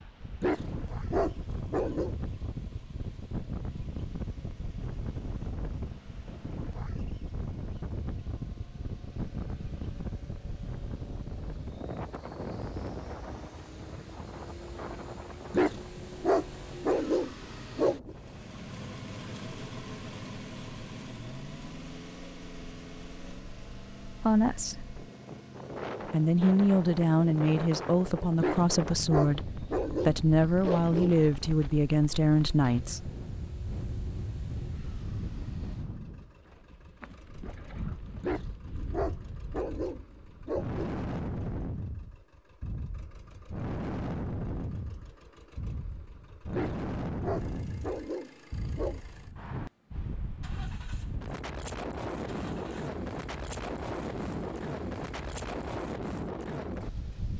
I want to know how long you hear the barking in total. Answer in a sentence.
The barking can be heard for 12 seconds in total.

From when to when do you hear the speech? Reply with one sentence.
The speech can be heard from 24.2 to 24.9 s and from 26.1 to 33.1 s.